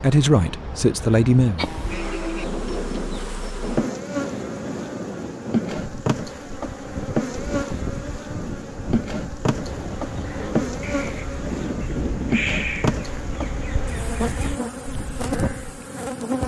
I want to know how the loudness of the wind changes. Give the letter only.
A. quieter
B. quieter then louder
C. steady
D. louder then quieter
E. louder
A.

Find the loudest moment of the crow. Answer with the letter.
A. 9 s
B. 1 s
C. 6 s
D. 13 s
D.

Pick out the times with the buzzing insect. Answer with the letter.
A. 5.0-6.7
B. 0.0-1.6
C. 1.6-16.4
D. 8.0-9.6
C.